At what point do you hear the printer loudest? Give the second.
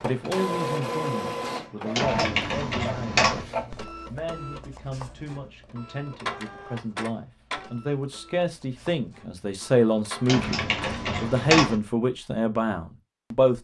1 s.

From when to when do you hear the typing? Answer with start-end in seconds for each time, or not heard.
1.9-3.5, 10.2-11.8.